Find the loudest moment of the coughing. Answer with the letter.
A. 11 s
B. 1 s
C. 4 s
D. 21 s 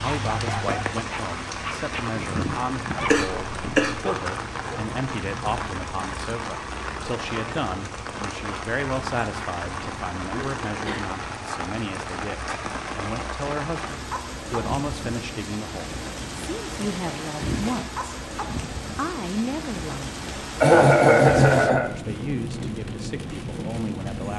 D.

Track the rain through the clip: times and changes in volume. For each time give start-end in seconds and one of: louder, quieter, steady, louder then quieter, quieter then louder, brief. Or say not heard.
0.0-24.3 steady.